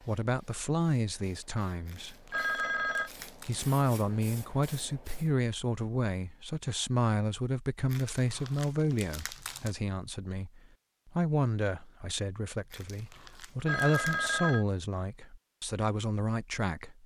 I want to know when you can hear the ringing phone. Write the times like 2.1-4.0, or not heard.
2.3-3.1, 13.7-14.7.